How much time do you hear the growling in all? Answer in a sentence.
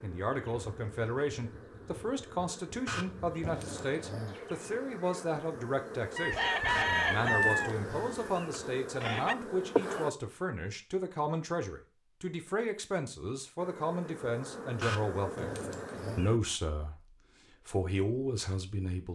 The growling can be heard for 5 seconds in total.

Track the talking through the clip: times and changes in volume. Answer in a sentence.
You can hear the talking from 0.0 to 19.1 s, at a steady volume.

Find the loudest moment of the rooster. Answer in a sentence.
The volume of the rooster peaks at 7 seconds.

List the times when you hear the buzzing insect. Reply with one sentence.
The buzzing insect can be heard from 0.0 to 10.2 s and from 13.6 to 16.4 s.